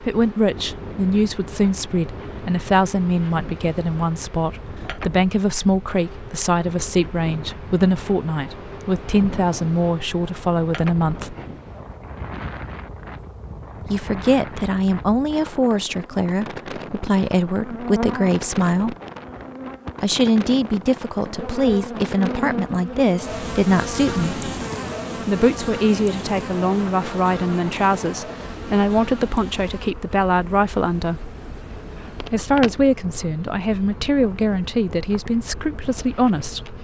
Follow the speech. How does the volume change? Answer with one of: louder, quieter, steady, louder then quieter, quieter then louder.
steady.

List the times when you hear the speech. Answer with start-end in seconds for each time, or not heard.
0.0-11.3, 13.9-18.9, 20.0-24.4, 25.1-31.3, 32.2-36.7.